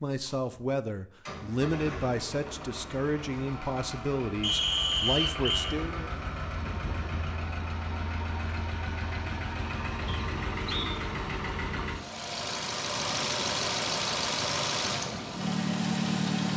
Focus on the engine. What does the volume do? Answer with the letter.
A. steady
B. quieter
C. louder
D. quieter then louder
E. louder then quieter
C.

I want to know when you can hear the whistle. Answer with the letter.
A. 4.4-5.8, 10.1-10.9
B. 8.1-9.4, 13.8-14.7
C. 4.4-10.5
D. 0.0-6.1
A.